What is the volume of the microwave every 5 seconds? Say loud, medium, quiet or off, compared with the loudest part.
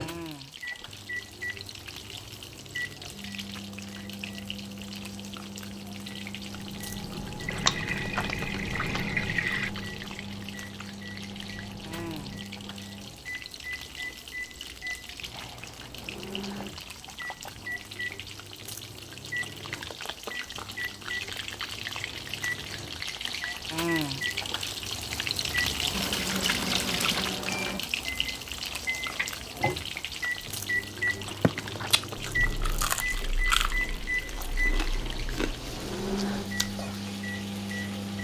medium, medium, medium, medium, medium, loud, loud, loud.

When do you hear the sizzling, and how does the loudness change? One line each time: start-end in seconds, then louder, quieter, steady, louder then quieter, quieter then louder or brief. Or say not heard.
0.0-38.2 louder then quieter.